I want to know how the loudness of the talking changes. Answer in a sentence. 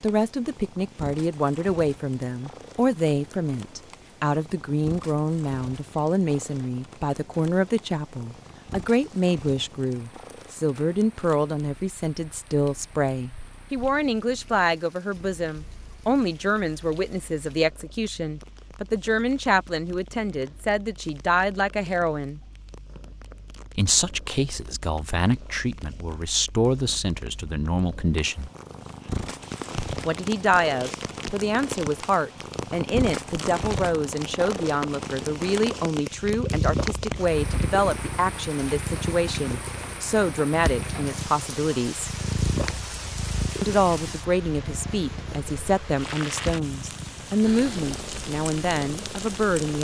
The loudness of the talking stays about the same.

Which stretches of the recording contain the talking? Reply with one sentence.
The talking can be heard from 0.0 to 22.4 s, from 23.8 to 28.5 s, from 30.1 to 42.1 s and from 43.6 to 49.7 s.